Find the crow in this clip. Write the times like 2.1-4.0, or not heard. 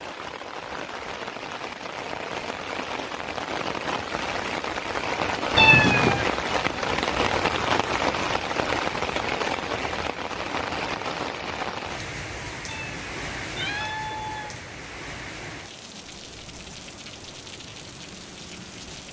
not heard.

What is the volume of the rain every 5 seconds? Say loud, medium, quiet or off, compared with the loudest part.
medium, loud, medium, quiet.